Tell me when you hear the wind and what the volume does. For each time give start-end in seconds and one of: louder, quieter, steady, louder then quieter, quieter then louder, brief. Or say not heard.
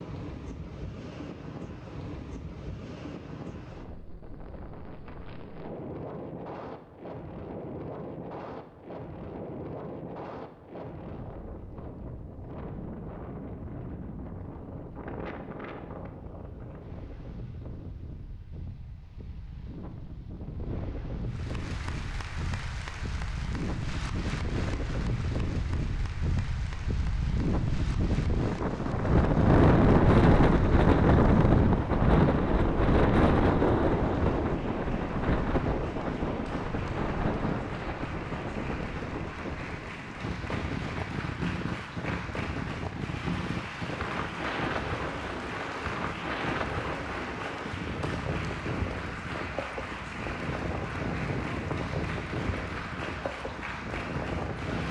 0.0-54.8 louder then quieter.